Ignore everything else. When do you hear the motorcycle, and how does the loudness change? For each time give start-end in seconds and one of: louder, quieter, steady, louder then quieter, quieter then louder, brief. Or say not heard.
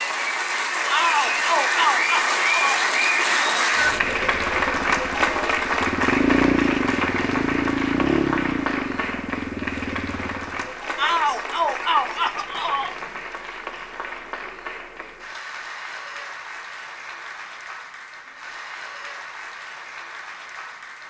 3.8-10.7 louder then quieter.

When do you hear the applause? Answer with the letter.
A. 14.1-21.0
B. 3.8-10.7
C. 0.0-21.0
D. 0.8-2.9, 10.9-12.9
C.